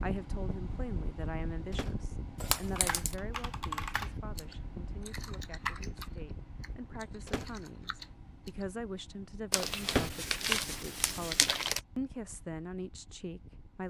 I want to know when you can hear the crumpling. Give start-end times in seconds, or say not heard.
2.4-3.1, 9.5-11.8.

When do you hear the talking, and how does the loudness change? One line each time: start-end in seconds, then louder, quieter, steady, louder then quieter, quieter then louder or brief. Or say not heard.
0.0-13.8 quieter then louder.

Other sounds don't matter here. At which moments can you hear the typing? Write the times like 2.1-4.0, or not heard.
2.8-8.7.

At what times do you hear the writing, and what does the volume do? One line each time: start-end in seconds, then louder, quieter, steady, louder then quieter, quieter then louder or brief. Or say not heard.
not heard.